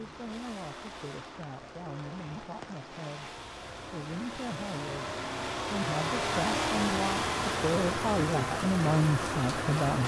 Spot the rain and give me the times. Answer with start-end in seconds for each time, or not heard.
0.0-10.0.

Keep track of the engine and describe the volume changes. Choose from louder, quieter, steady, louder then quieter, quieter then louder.
louder.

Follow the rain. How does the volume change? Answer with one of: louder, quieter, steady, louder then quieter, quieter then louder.
louder.